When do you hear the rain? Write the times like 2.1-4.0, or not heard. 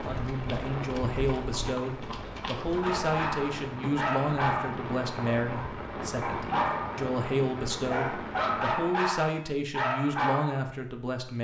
0.0-9.0.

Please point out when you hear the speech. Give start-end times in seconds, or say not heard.
0.0-11.3.